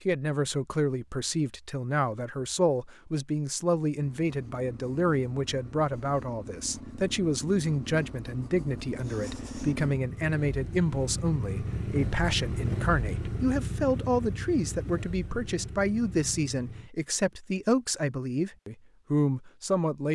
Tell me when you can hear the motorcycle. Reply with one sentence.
The motorcycle can be heard from 4.0 to 16.9 s.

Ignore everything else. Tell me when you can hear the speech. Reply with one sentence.
You can hear the speech from 0.1 to 20.1 s.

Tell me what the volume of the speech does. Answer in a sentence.
The volume of the speech stays about the same.